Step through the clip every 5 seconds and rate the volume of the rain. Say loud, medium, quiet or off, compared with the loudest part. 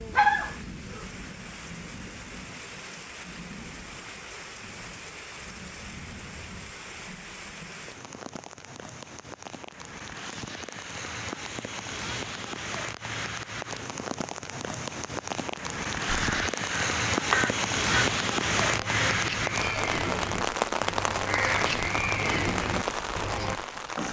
quiet, quiet, medium, loud, loud.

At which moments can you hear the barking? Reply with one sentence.
The barking can be heard from 0.1 to 1.1 s.